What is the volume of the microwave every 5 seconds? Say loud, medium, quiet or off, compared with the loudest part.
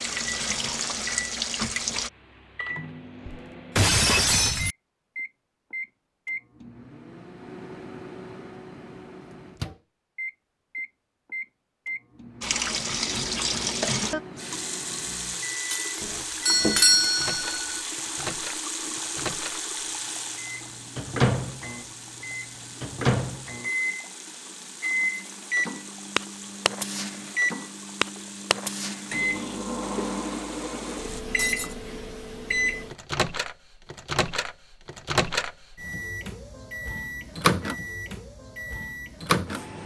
medium, medium, medium, medium, loud, loud, loud, loud.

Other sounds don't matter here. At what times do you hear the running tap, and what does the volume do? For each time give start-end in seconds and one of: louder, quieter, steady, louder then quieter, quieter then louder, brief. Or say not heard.
0.0-2.1 brief
12.4-31.2 quieter.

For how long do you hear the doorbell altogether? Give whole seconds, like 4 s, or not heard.
2 s.